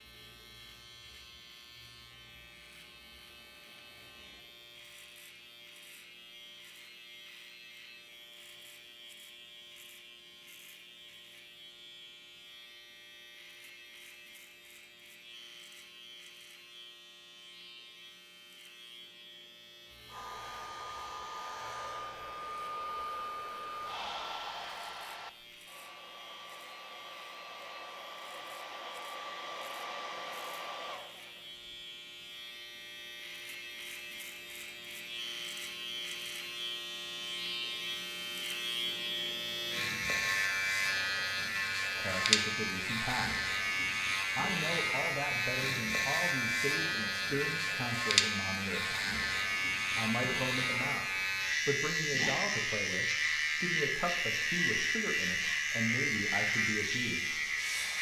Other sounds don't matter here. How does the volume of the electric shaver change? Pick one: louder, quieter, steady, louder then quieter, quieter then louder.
louder.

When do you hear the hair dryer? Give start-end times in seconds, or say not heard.
20.1-31.6.